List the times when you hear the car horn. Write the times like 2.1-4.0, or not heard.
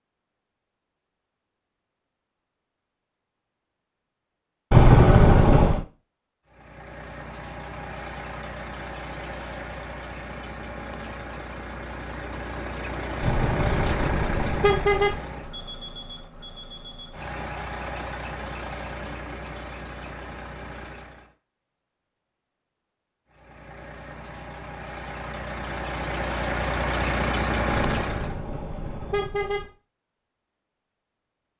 4.7-5.8, 13.2-15.2, 27.7-29.7.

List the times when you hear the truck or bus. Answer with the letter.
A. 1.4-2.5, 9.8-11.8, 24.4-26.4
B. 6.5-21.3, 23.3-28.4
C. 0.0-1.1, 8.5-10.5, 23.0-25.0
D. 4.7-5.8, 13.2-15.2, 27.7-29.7
B.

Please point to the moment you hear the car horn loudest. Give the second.
5 s.